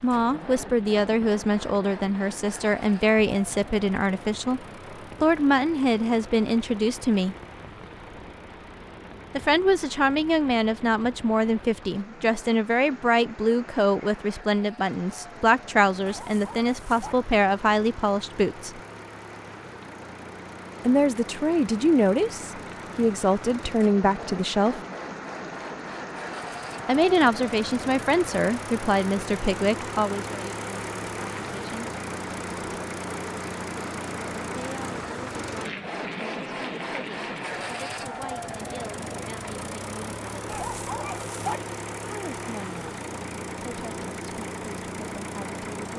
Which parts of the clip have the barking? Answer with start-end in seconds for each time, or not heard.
16.1-17.1, 40.5-41.6.